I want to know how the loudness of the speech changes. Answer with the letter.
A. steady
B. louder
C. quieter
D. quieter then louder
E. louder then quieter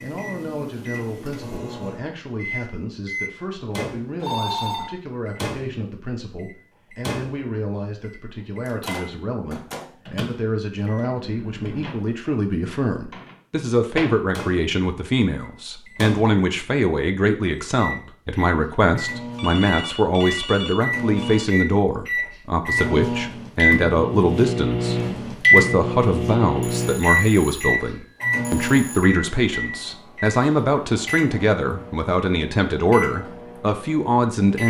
B.